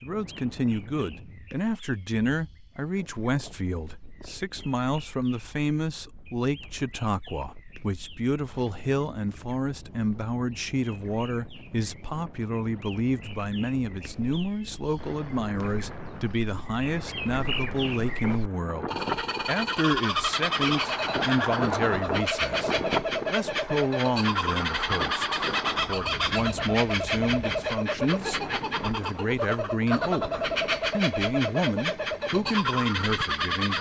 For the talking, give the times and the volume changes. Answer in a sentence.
You can hear the talking from 0.0 to 33.7 s, at a steady volume.